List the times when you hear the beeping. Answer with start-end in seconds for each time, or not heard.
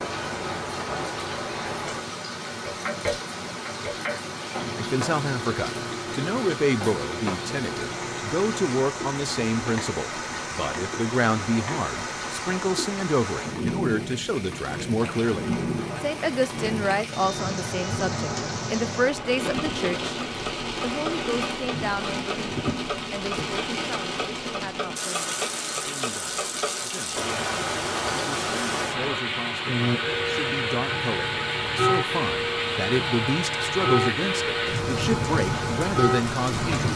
not heard.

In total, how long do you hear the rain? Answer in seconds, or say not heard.
37 s.